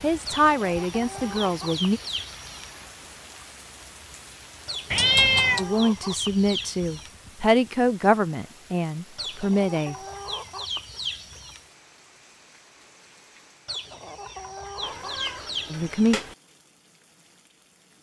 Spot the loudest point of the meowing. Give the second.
5 s.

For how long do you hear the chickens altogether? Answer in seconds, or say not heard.
10 s.